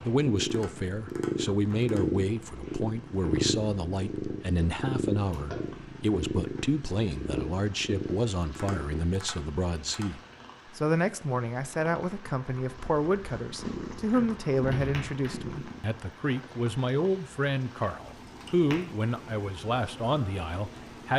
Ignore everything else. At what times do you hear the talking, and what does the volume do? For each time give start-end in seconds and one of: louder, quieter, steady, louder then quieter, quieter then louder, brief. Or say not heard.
0.0-21.1 steady.